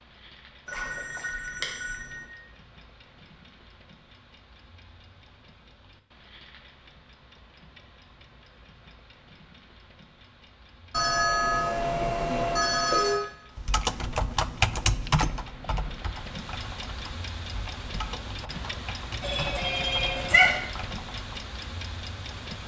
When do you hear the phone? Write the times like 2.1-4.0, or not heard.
0.7-2.2, 10.9-13.2, 19.2-20.6.